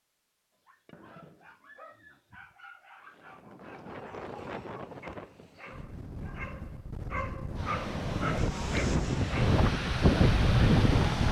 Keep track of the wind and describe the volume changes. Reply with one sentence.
The loudness of the wind goes up.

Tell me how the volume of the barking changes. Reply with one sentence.
The volume of the barking goes up.